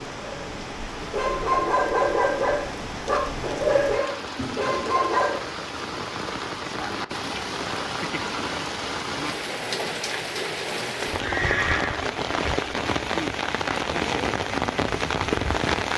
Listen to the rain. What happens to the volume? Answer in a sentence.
The volume of the rain goes up.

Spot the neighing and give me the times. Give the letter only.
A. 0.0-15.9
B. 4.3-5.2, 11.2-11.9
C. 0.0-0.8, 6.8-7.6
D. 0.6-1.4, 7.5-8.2
B.